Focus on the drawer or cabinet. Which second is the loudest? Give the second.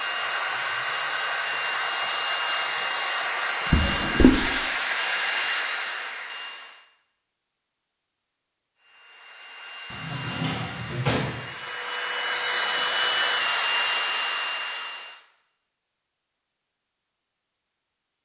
4 s.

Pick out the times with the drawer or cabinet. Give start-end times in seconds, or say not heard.
3.7-4.4, 9.9-11.4.